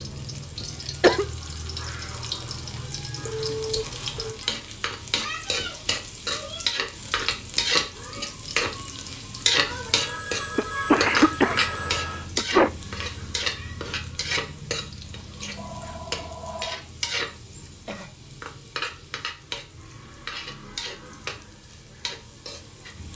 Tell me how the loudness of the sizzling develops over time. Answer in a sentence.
The loudness of the sizzling goes up, then down.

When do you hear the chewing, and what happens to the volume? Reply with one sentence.
The chewing can't be heard in this clip.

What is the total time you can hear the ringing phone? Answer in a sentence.
The ringing phone can be heard for 5 seconds in total.